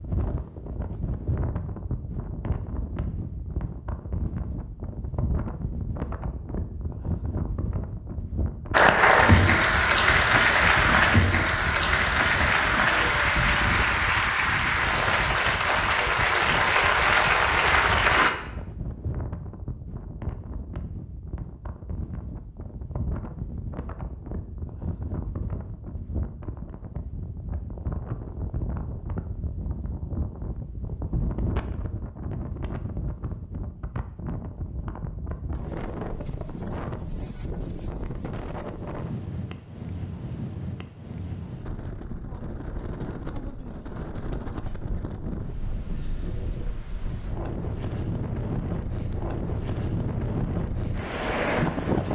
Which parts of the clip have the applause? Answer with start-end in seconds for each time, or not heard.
8.7-18.3.